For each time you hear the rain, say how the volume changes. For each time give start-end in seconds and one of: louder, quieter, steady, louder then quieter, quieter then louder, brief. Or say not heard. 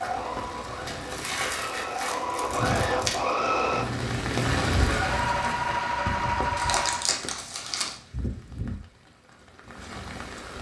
0.0-10.5 louder then quieter.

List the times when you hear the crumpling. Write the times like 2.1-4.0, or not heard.
0.8-3.2, 6.5-8.0.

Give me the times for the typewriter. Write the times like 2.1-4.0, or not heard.
not heard.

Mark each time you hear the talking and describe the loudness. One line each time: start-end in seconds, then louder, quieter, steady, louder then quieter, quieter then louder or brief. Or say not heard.
not heard.